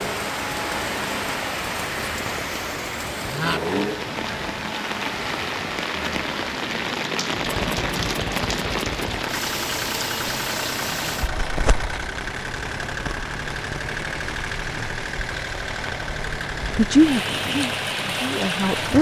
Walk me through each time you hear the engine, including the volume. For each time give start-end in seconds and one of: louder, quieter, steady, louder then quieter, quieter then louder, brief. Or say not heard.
0.0-18.9 steady.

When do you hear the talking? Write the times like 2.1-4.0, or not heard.
16.8-18.9.